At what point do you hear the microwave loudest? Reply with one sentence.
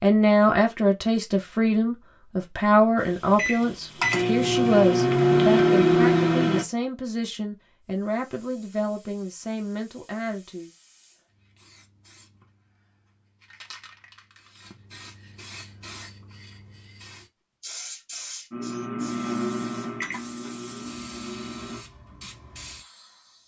The loudest moment of the microwave is at 6 seconds.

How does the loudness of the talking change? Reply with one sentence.
The loudness of the talking goes down.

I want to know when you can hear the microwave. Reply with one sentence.
The microwave can be heard from 3.4 to 6.7 s and from 18.5 to 21.9 s.